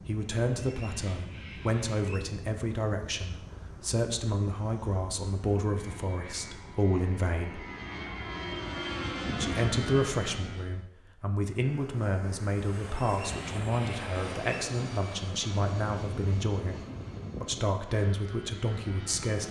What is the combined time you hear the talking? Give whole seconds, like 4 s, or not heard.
17 s.